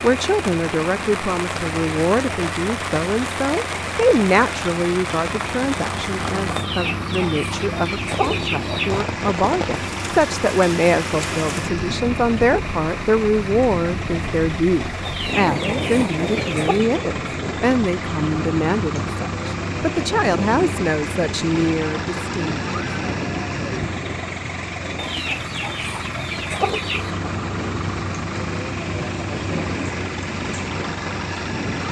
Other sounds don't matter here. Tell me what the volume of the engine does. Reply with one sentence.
The volume of the engine stays about the same.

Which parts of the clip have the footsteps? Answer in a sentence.
The footsteps can't be heard in this clip.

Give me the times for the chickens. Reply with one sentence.
The chickens can be heard from 6.5 to 9.1 s, from 15.1 to 16.9 s and from 24.9 to 27.1 s.